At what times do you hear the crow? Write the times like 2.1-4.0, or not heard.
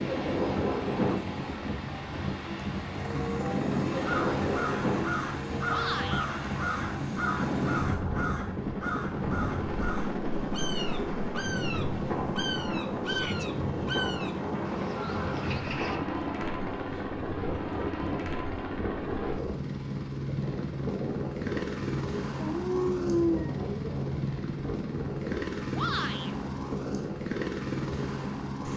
4.0-16.0.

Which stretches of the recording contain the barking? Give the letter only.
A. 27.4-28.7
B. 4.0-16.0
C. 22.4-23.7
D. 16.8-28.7
C.